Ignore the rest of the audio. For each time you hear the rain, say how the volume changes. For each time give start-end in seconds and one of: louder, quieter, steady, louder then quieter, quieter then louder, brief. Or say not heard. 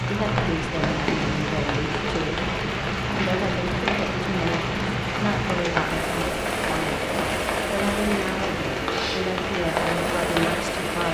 0.0-11.0 steady.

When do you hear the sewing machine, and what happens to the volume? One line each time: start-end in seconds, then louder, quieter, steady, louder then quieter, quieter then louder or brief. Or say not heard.
0.0-11.0 steady.